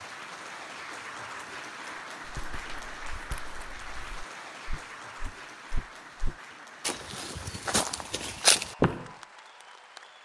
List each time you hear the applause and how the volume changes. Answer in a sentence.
The applause can be heard from 0.0 to 10.1 s, getting quieter.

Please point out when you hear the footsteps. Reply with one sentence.
The footsteps can be heard from 2.2 to 9.1 s.